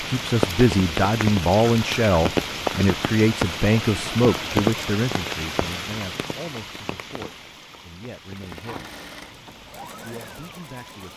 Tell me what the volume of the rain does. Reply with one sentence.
The volume of the rain goes down.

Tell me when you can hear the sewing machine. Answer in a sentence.
You can hear the sewing machine from 8.2 to 11.1 s.